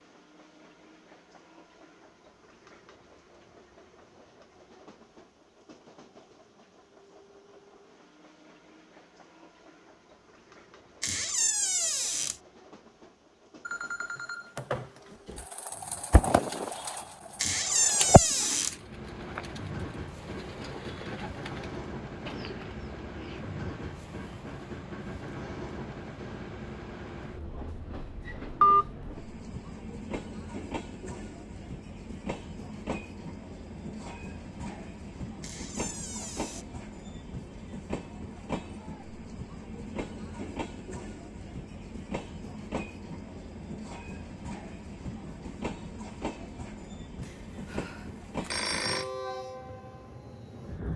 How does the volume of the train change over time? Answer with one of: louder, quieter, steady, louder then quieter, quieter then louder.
louder.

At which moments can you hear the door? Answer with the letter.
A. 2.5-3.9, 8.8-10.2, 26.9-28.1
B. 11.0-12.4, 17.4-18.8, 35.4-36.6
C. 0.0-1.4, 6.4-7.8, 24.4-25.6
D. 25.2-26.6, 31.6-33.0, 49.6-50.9
B.